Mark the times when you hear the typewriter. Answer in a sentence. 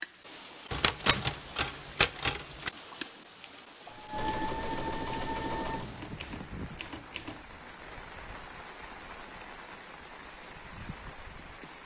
The typewriter can be heard from 0.7 to 2.7 s and from 6.0 to 7.5 s.